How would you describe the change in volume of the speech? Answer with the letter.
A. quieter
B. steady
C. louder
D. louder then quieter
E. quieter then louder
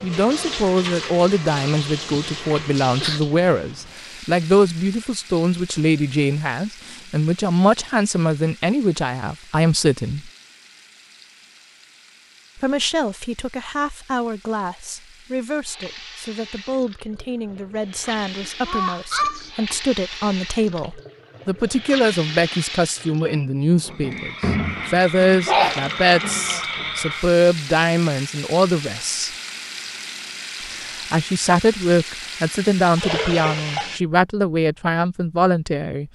E.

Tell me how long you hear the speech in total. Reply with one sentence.
The speech can be heard for 32 seconds in total.